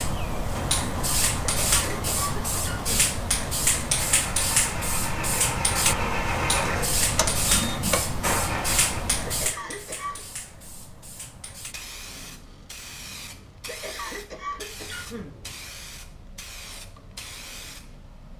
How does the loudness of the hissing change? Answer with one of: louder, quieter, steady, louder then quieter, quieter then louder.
quieter.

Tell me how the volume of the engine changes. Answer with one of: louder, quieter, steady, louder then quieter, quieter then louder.
louder.